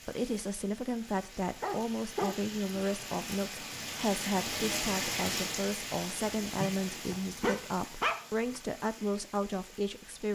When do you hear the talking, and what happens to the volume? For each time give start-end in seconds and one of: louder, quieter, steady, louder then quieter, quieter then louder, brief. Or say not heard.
0.1-10.2 steady.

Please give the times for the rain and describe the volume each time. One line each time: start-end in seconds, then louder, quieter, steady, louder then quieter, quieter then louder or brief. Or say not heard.
0.0-10.2 louder then quieter.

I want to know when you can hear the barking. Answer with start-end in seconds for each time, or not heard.
1.6-2.9, 6.5-8.6.